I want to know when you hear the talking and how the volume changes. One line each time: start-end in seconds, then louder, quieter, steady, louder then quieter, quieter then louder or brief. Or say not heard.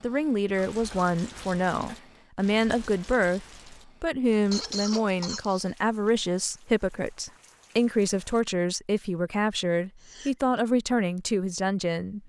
0.0-12.2 steady.